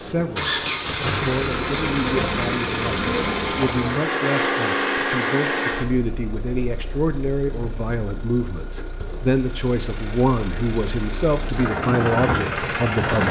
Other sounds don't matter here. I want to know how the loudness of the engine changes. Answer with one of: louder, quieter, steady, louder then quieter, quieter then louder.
quieter then louder.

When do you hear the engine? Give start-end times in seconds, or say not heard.
0.0-13.2.